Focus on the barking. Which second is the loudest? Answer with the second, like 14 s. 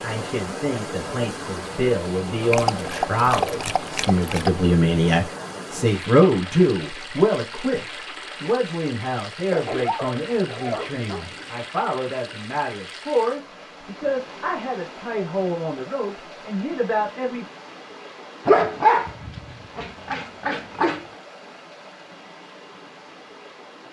19 s.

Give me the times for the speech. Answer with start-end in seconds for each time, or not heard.
0.0-17.4.